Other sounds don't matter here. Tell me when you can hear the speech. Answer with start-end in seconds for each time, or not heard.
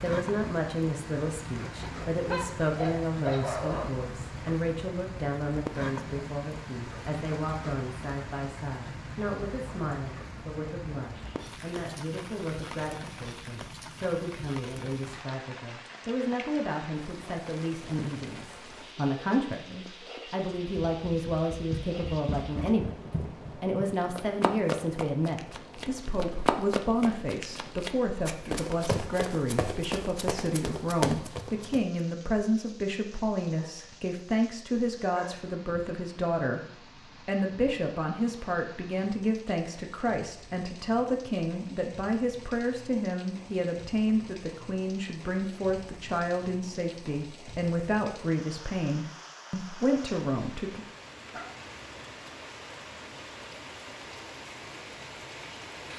0.0-50.9.